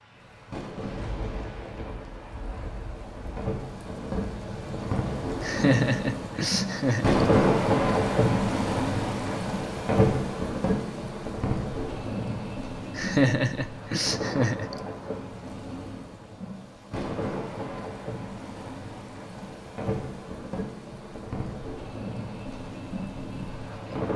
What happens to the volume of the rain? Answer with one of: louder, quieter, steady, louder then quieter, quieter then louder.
louder then quieter.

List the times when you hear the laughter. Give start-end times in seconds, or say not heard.
5.4-7.2, 12.9-14.8.